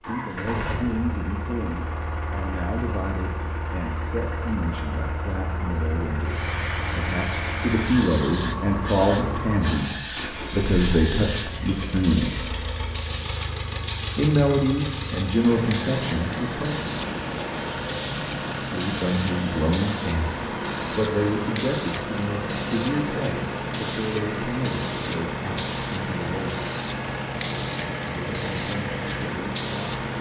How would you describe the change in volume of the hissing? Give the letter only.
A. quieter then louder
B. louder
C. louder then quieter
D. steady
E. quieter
D.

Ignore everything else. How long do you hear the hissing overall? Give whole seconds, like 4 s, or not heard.
24 s.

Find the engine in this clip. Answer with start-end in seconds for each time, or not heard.
0.0-30.1.